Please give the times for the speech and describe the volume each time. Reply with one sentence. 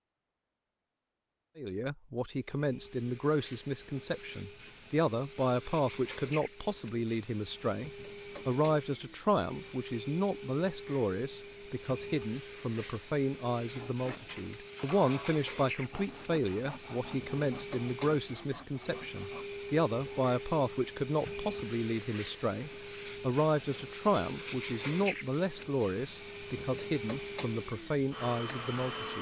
The speech can be heard from 1.6 to 29.1 s, at a steady volume.